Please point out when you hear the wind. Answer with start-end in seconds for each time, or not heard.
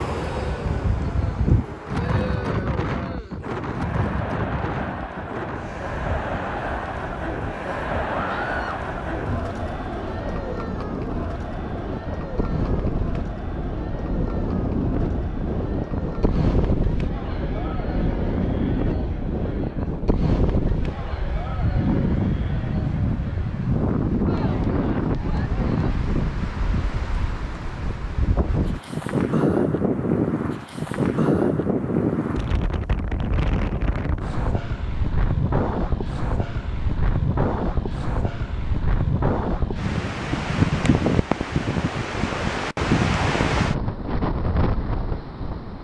0.0-45.7.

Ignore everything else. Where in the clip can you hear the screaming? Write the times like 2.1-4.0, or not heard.
8.1-8.8.